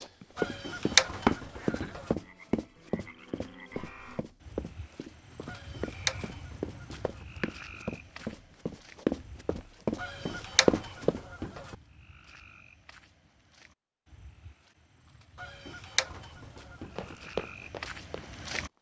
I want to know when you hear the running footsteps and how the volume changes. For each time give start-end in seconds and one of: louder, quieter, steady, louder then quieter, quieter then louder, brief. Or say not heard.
0.0-11.2 quieter then louder
16.9-18.7 brief.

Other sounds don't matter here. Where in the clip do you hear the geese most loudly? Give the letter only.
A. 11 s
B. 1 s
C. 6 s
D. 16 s
B.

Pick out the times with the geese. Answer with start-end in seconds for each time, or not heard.
0.3-2.1, 5.5-7.2, 10.0-11.8, 15.3-17.1.